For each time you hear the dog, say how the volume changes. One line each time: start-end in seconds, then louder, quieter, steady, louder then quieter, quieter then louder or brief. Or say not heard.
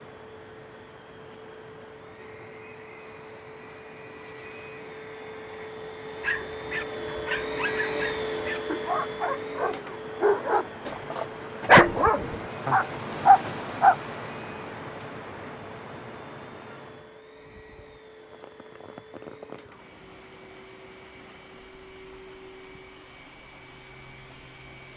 6.2-13.9 louder.